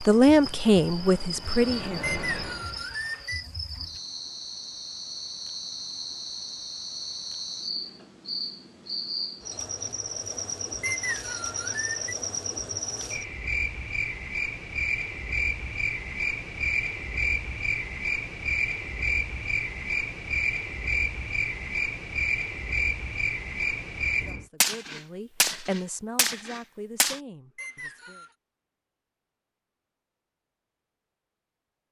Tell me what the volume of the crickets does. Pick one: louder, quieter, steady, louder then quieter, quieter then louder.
louder.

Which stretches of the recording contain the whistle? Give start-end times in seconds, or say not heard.
2.0-3.5, 10.8-12.2, 27.6-28.4.